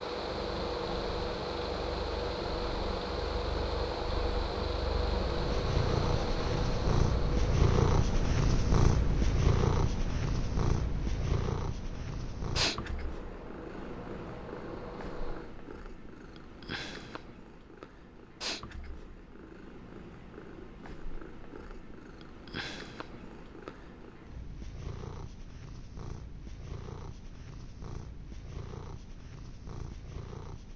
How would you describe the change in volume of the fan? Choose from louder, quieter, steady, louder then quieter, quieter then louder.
quieter.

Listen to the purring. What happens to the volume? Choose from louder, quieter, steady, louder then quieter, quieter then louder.
quieter.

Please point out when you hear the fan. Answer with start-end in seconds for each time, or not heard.
0.0-15.6.